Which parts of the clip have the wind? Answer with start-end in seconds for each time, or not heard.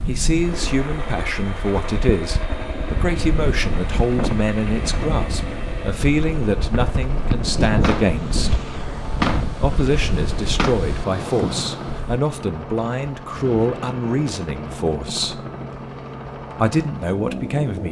0.0-12.2.